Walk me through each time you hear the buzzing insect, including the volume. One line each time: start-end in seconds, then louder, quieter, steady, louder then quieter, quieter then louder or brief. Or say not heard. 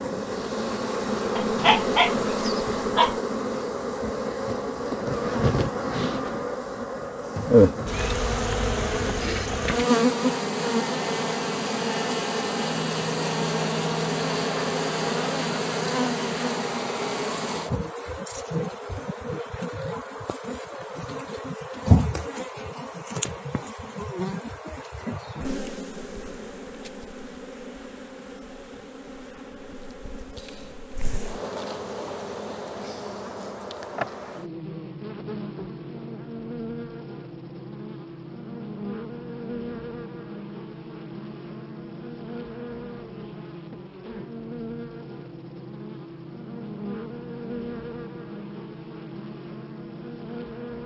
0.0-50.8 quieter.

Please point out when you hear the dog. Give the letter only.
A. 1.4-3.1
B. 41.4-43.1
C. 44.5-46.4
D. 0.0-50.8
A.